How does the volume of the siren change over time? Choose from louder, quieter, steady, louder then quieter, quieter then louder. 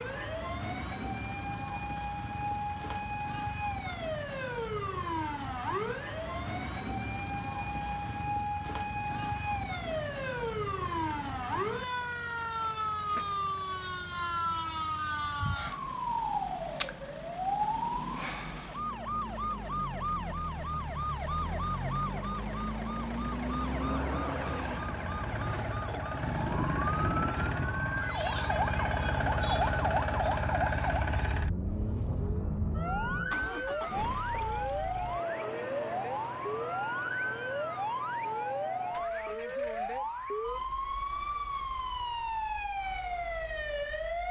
steady.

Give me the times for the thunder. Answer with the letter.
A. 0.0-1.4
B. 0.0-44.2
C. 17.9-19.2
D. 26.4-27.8
D.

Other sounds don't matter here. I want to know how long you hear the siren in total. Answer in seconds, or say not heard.
44 s.